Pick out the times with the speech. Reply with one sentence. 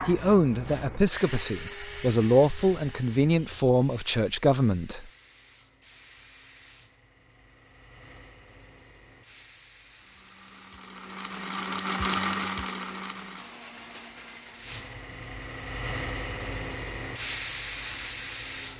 The speech can be heard from 0.1 to 5.0 s.